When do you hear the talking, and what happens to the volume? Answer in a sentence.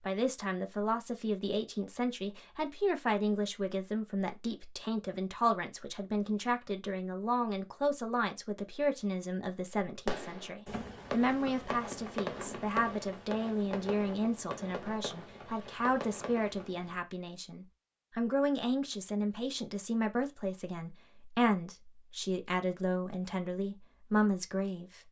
The talking can be heard from 0.0 to 25.0 s, at a steady volume.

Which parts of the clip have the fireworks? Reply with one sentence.
You can hear the fireworks from 10.1 to 17.0 s.